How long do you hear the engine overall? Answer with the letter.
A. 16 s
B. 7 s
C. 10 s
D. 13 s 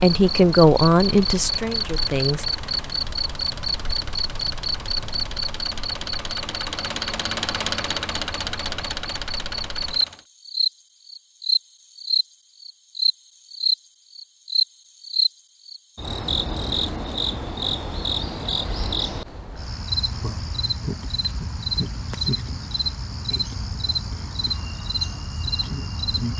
C.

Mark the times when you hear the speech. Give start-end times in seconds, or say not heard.
0.0-2.5.